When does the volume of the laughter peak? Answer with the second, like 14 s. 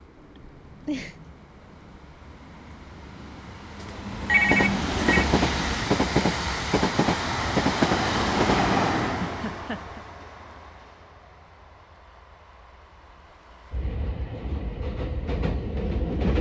1 s.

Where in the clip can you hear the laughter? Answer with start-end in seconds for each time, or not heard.
0.3-1.1, 9.2-10.0.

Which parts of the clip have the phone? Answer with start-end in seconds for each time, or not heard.
3.8-5.2.